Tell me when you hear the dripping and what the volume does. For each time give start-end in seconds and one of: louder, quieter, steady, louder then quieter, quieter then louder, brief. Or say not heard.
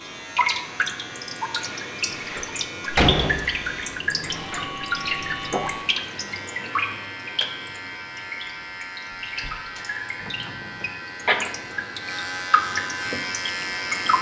0.0-14.1 quieter then louder.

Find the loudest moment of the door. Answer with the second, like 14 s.
3 s.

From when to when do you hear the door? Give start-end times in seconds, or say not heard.
2.1-4.8, 9.3-10.9.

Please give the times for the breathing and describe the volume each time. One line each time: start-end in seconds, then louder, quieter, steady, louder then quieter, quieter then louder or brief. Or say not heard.
not heard.